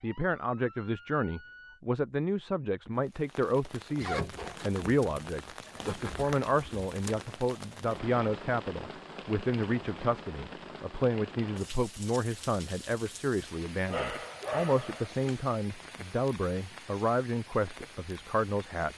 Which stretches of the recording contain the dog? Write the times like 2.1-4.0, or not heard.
13.8-15.4.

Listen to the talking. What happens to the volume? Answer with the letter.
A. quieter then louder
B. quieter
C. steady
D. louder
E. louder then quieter
C.